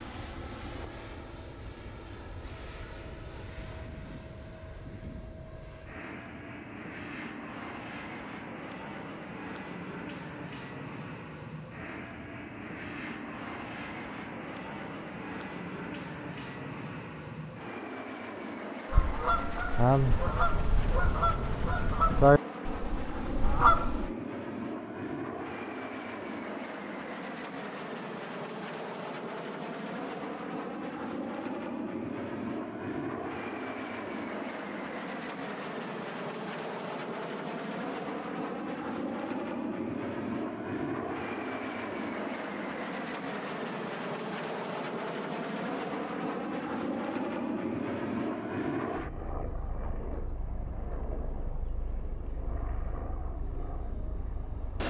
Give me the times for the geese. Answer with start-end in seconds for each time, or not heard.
18.9-24.1.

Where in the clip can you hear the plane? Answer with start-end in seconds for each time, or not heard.
0.0-54.8.